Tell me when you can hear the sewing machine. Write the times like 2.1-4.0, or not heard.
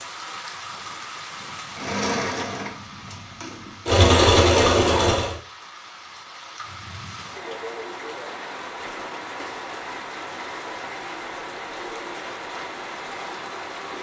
1.7-5.3.